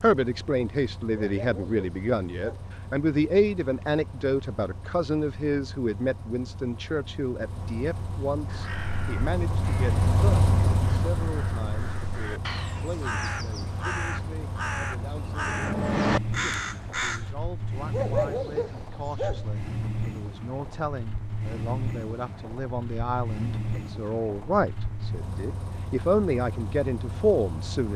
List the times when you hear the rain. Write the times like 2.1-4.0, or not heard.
not heard.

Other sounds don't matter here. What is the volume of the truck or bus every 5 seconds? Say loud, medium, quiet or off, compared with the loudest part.
quiet, medium, loud, loud, loud, medium.